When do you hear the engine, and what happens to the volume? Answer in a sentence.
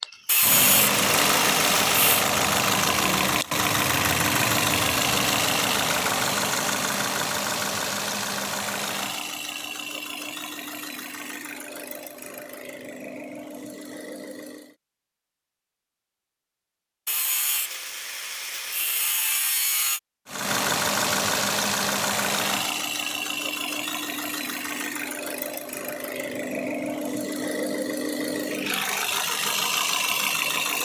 The engine can be heard from 0.0 to 14.8 s, getting quieter; and from 20.2 to 30.8 s, getting quieter then louder.